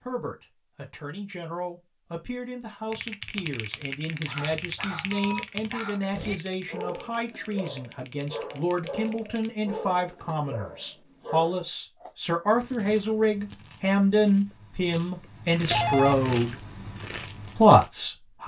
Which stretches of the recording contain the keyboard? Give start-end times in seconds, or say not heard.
2.9-9.6.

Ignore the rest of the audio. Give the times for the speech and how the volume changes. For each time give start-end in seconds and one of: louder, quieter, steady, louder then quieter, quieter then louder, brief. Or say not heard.
0.0-16.6 louder
17.6-18.4 brief.